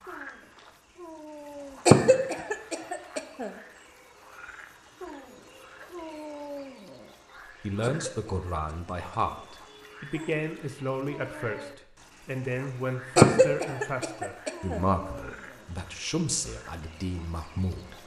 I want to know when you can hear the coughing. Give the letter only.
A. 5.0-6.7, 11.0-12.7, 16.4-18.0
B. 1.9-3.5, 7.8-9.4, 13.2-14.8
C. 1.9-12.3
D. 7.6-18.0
B.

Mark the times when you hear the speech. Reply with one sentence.
You can hear the speech from 7.6 to 18.0 s.